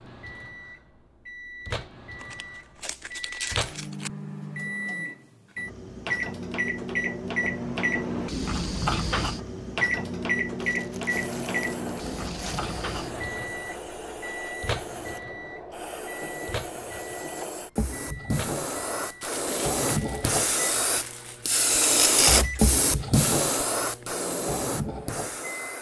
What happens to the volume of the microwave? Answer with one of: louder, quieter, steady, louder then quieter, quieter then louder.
louder then quieter.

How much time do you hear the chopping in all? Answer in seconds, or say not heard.
not heard.